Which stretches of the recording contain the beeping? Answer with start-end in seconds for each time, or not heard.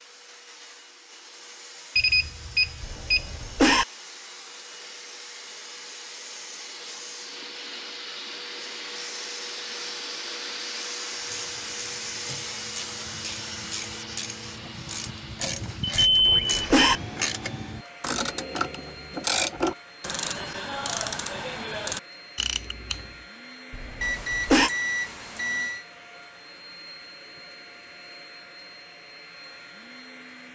1.9-3.4, 15.8-16.9, 24.0-25.9.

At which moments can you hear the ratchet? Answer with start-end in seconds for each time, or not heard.
11.2-23.1.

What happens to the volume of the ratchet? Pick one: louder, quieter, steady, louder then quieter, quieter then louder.
louder.